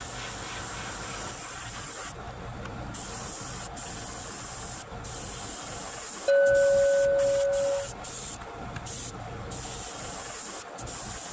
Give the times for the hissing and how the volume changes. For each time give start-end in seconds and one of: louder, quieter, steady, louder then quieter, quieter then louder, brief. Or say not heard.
0.0-11.2 steady.